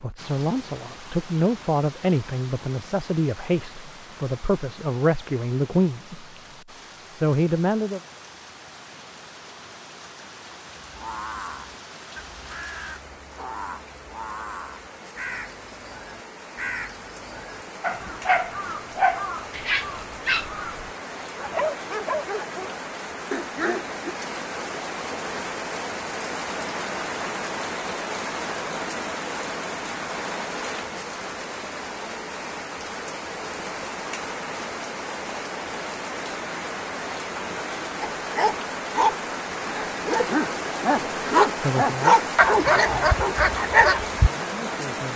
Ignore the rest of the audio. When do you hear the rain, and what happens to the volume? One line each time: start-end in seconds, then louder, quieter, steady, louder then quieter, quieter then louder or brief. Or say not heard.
0.0-45.1 louder.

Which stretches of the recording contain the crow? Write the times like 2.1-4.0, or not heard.
10.8-20.9.